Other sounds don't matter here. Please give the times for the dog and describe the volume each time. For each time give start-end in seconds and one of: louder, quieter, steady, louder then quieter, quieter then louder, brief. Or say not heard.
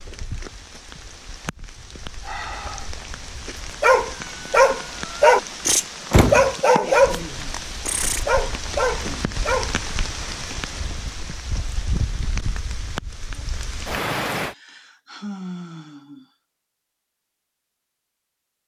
3.8-9.8 quieter then louder.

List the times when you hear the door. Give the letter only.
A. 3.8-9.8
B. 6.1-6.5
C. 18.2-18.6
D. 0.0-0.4
B.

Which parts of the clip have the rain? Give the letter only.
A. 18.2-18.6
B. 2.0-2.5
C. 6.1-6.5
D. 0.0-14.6
D.